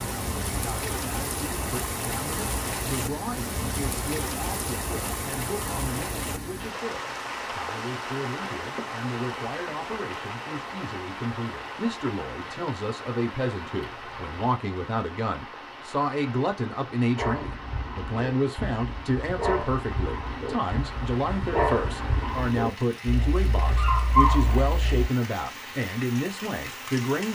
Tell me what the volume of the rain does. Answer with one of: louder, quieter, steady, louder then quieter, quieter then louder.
quieter.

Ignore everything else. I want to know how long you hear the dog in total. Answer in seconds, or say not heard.
8 s.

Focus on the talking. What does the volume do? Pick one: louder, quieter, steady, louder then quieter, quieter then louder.
louder.